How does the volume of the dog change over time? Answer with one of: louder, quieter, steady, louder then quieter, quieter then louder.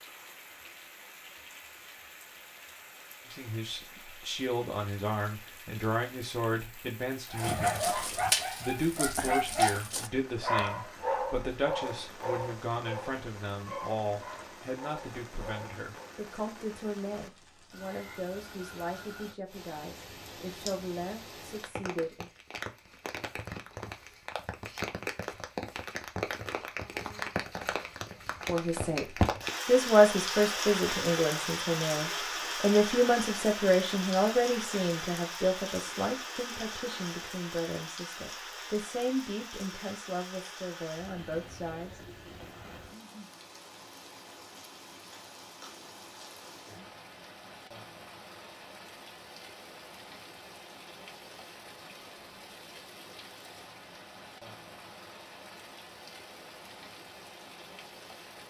quieter.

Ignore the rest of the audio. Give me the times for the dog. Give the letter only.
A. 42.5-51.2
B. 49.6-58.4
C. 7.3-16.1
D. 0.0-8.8
C.